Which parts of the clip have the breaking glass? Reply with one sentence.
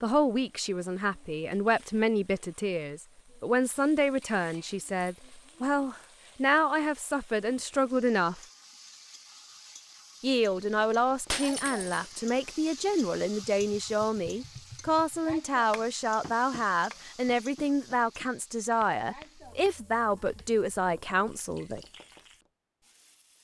You can hear the breaking glass from 11.3 to 12.0 s.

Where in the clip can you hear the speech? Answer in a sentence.
You can hear the speech from 0.0 to 8.4 s and from 10.2 to 21.8 s.